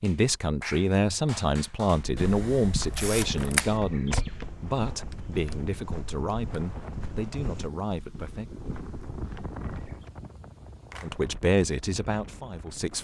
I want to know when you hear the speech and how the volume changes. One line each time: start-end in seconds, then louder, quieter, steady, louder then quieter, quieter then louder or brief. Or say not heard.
0.0-8.4 quieter
11.0-12.9 brief.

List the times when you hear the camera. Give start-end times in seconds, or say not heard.
2.1-3.8.